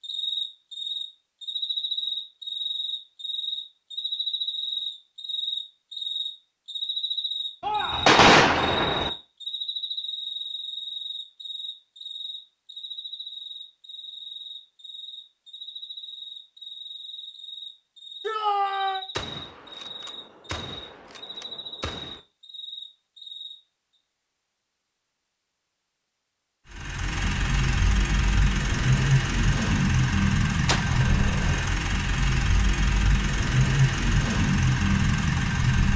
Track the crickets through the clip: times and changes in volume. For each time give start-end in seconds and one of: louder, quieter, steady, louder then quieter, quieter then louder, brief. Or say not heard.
0.0-23.6 quieter.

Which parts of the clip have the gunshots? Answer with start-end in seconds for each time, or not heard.
7.6-9.1, 19.1-22.2, 30.6-31.7.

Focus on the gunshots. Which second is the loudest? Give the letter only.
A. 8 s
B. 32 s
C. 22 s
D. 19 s
A.